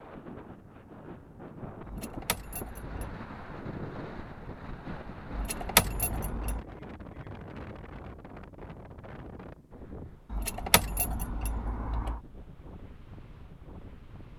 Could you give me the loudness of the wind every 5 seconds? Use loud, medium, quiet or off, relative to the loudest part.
loud, loud, medium.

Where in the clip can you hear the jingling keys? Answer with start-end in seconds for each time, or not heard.
1.9-3.1, 5.3-6.7, 10.3-12.2.